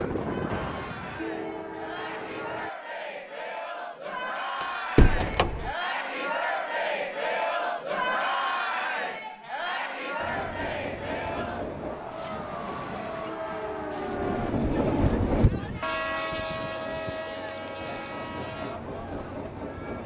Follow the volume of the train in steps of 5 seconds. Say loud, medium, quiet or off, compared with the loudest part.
loud, off, loud, loud.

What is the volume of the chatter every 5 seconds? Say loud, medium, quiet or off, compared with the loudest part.
medium, loud, medium, quiet.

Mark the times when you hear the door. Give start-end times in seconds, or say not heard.
4.6-5.7.